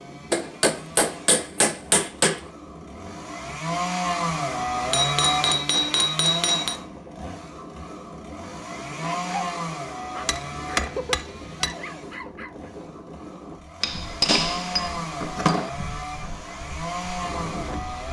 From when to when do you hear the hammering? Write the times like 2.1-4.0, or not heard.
0.3-2.4, 4.9-6.8, 10.2-11.8, 13.8-15.7.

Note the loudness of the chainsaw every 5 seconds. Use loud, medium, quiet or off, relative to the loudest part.
loud, loud, medium, loud.